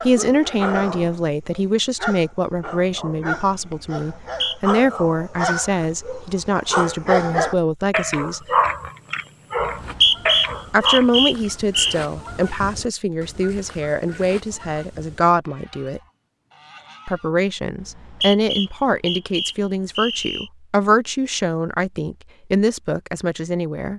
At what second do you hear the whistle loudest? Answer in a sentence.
The volume of the whistle peaks at 10 seconds.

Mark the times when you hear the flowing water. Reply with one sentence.
You can't hear the flowing water here.